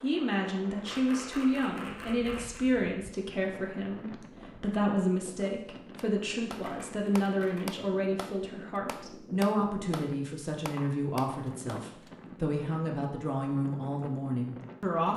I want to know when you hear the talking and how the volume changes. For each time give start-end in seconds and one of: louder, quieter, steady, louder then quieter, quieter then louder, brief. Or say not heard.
0.0-15.1 steady.